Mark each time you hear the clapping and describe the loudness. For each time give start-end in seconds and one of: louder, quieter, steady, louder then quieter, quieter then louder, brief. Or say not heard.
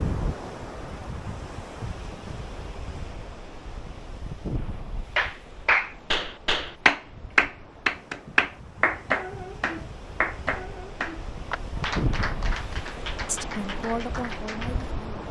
5.2-14.8 quieter.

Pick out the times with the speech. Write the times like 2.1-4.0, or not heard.
13.2-15.2.